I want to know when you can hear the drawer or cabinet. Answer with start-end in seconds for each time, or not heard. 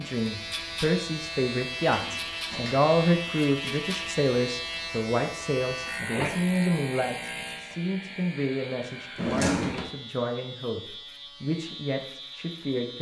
1.9-2.9, 9.2-9.8.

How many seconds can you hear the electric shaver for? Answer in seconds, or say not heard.
13 s.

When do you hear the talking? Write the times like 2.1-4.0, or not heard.
0.0-12.9.